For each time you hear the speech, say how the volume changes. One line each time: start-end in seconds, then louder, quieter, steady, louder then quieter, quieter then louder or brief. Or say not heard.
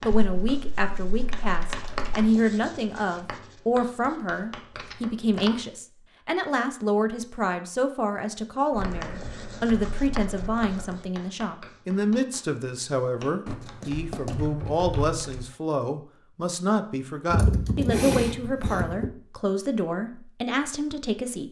0.0-21.4 steady.